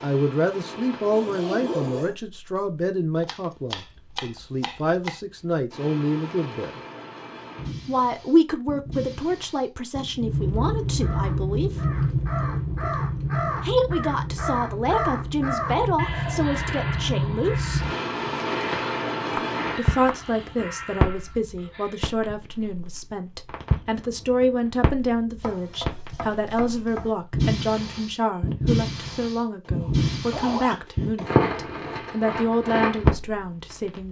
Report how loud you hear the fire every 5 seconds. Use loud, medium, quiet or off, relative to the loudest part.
quiet, quiet, loud, loud, medium, loud, loud.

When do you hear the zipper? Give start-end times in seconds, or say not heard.
1.1-2.1, 29.6-31.2.